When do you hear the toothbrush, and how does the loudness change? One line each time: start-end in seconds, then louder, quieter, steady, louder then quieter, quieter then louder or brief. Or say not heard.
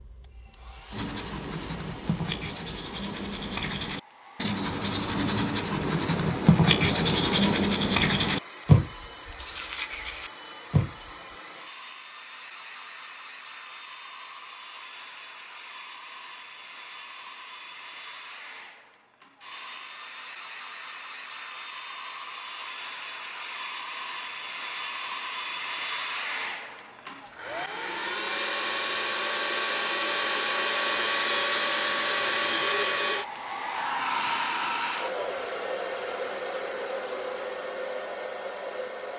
0.9-11.1 louder then quieter.